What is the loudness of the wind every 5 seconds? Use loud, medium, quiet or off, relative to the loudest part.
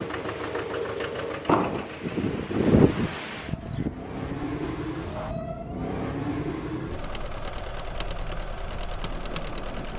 loud, quiet.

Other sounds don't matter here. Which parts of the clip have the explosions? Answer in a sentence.
The explosions can be heard from 1.4 to 1.9 s.